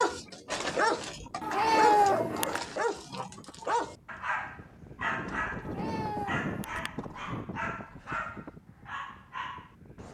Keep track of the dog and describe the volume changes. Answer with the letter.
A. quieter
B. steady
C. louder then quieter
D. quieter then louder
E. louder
A.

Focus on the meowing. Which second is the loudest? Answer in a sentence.
The loudest moment of the meowing is at 2 seconds.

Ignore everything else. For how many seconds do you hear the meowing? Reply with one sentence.
You can hear the meowing for 3 seconds altogether.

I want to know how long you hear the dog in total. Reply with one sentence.
The dog can be heard for 10 seconds in total.